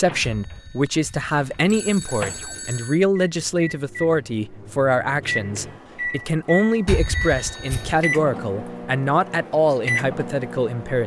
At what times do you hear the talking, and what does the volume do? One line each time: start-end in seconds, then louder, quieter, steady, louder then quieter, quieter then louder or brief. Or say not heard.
0.0-11.0 steady.